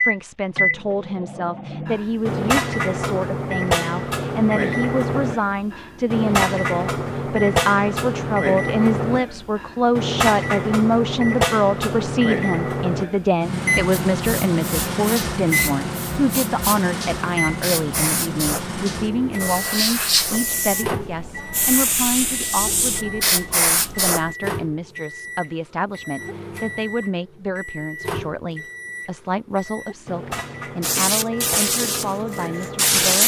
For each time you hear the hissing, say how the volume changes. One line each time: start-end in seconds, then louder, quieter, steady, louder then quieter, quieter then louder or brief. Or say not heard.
14.1-24.4 louder
30.8-33.2 brief.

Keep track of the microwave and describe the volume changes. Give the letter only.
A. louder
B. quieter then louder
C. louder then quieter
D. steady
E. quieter
E.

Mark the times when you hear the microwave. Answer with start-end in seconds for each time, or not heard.
0.0-33.2.